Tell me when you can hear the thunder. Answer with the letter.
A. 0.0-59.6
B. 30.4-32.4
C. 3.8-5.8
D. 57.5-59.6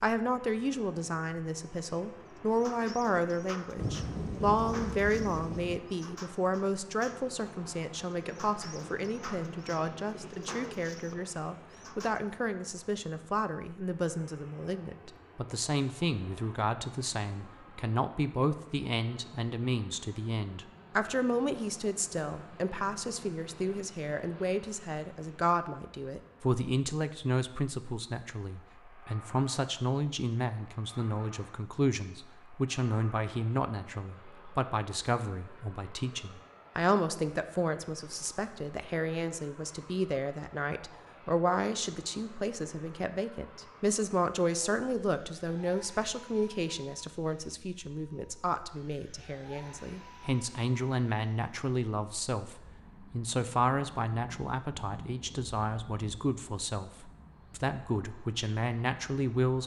C.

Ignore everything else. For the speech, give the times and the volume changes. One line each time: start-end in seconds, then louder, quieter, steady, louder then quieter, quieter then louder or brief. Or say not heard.
0.0-59.6 steady.